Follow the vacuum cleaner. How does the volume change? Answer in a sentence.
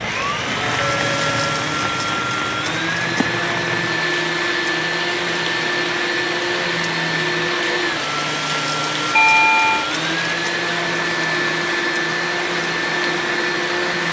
The loudness of the vacuum cleaner stays about the same.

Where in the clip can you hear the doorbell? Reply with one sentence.
The doorbell can be heard from 0.7 to 1.7 s and from 9.2 to 9.8 s.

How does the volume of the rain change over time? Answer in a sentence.
The volume of the rain stays about the same.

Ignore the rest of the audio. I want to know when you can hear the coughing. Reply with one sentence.
The coughing can't be heard in this clip.